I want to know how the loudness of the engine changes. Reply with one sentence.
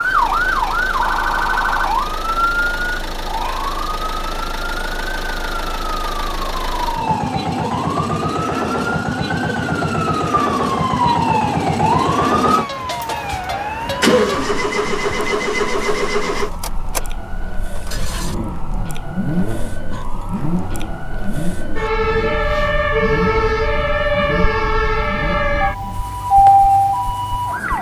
The volume of the engine goes up, then down.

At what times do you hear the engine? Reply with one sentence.
The engine can be heard from 0.0 to 27.7 s.